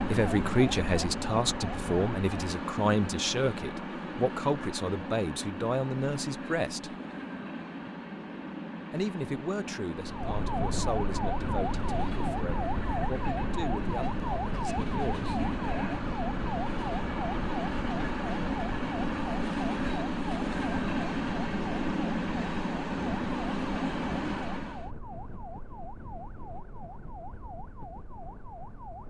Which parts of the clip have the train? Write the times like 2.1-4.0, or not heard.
0.0-24.9.